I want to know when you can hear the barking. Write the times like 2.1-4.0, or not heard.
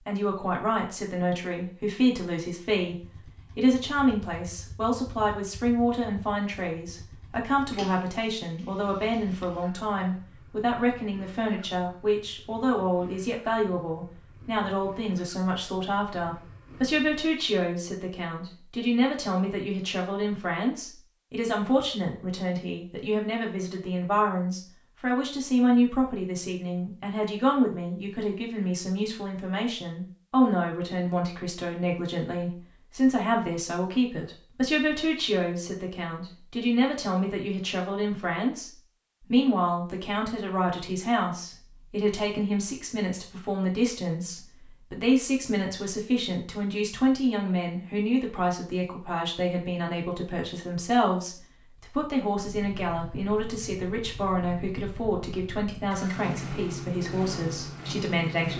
not heard.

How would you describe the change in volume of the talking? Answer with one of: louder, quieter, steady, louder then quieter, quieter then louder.
steady.